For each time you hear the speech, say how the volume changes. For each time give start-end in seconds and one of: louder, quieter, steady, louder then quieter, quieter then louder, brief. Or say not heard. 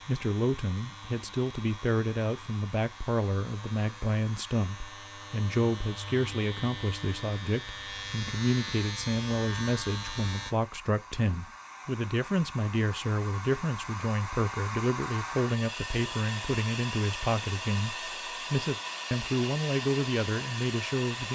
0.1-21.3 steady.